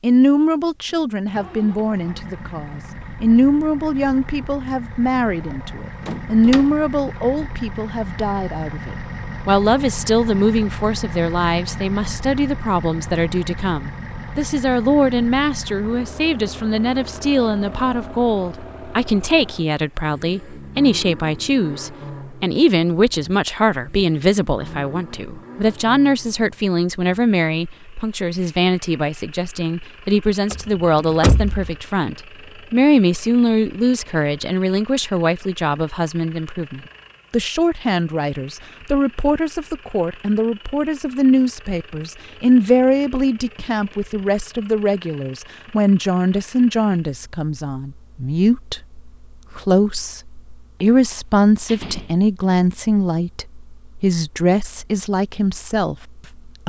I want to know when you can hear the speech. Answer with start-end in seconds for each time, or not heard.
0.0-56.6.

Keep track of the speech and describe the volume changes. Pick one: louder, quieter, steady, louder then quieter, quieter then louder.
steady.